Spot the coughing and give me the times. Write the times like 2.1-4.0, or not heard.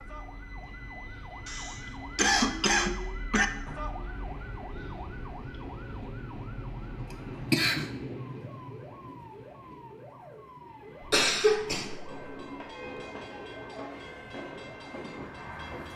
1.4-3.5, 7.5-7.9, 11.0-12.2.